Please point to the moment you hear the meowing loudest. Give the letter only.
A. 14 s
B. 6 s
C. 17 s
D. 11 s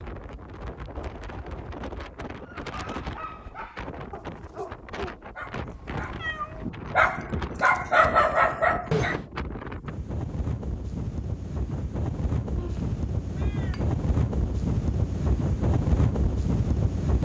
B.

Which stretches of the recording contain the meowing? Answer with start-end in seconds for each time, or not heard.
5.7-6.7, 12.6-13.8.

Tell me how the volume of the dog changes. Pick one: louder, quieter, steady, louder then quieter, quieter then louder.
louder.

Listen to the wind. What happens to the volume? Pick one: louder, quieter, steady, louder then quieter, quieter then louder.
louder.